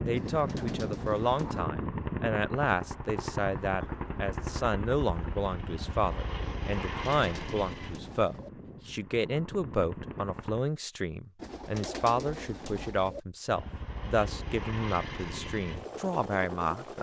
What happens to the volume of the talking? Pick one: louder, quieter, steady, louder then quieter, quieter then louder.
steady.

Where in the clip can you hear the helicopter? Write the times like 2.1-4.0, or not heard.
0.0-10.7, 13.4-16.9.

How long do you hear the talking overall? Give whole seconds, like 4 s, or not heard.
17 s.